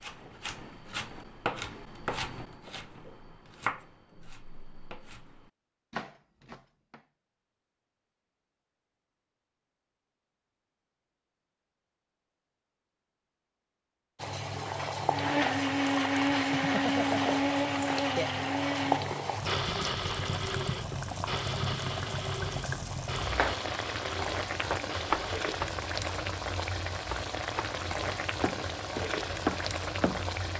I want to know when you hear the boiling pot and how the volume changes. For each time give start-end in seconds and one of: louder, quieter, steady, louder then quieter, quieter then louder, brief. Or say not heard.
14.2-30.5 steady.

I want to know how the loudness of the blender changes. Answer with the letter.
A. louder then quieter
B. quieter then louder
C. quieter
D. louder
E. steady
C.